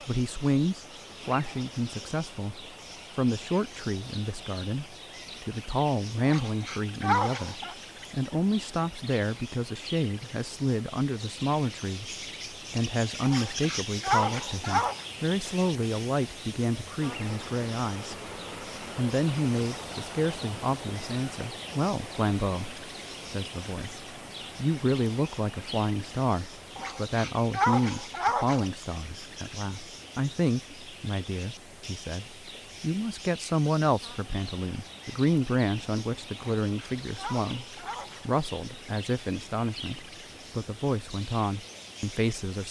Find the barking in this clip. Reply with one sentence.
The barking can be heard from 6.2 to 7.8 s, from 13.2 to 15.1 s, from 26.8 to 28.6 s and from 36.6 to 38.3 s.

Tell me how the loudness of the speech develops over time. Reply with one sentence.
The loudness of the speech stays about the same.